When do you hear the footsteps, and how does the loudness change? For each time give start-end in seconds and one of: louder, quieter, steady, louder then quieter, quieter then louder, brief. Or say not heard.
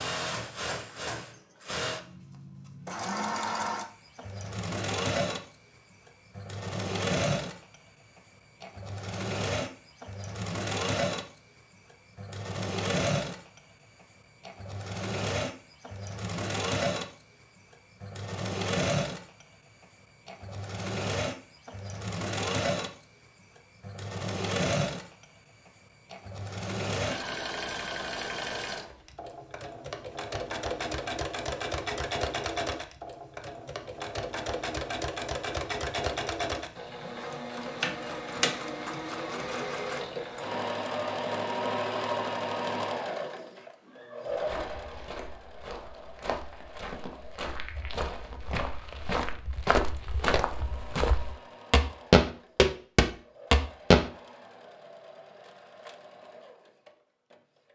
44.3-54.1 louder.